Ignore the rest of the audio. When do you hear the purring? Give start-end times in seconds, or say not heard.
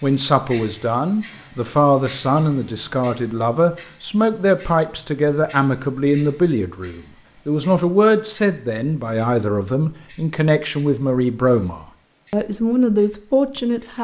not heard.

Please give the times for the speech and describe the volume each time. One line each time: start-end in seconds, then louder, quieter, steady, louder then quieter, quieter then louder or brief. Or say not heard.
0.0-13.9 steady.